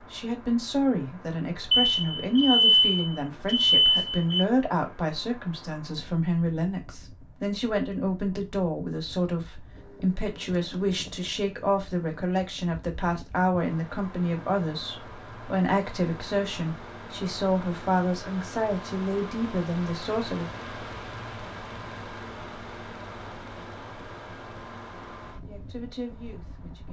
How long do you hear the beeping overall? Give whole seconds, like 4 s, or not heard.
3 s.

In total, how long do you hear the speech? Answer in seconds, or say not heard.
22 s.